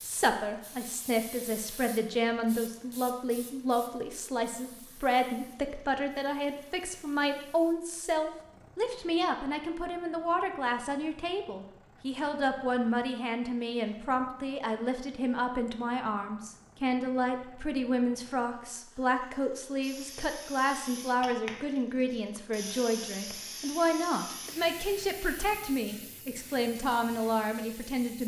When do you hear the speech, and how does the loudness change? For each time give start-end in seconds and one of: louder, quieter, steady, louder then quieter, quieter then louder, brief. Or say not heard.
0.0-28.2 steady.